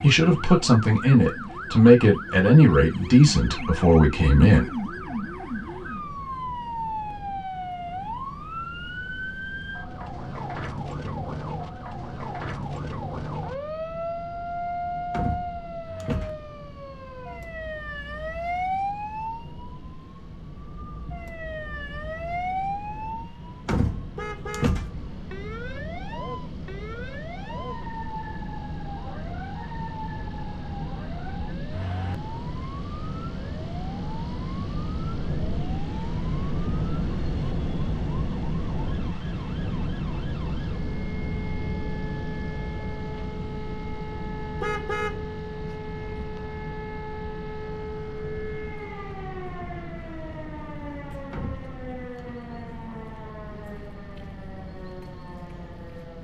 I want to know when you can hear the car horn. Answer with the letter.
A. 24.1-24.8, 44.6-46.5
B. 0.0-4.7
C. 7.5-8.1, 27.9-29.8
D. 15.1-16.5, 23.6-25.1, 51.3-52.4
A.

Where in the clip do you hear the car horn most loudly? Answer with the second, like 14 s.
45 s.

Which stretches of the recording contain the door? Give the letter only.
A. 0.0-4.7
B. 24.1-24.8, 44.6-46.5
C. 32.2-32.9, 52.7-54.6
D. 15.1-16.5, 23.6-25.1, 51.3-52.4
D.